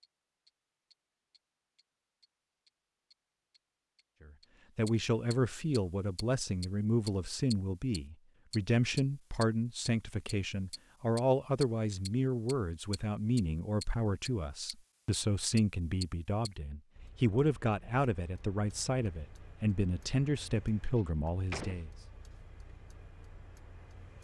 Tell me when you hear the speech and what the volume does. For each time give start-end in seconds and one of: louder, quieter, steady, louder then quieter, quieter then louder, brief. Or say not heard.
4.2-21.9 steady.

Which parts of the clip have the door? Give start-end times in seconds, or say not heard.
20.9-21.9.